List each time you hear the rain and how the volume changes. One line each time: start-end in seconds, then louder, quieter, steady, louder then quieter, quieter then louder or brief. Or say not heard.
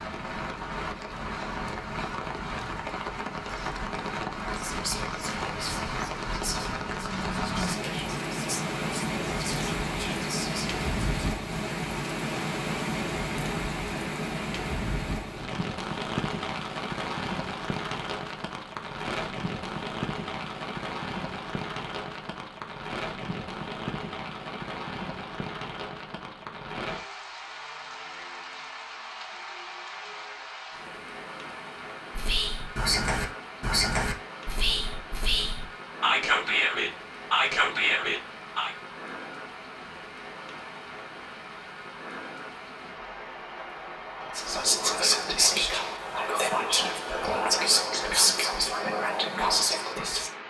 0.0-50.4 quieter.